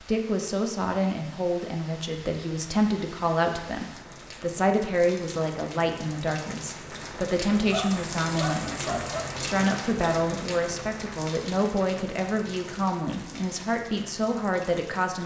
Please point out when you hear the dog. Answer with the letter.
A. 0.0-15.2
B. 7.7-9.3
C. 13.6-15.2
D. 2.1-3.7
B.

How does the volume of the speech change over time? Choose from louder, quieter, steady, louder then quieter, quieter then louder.
steady.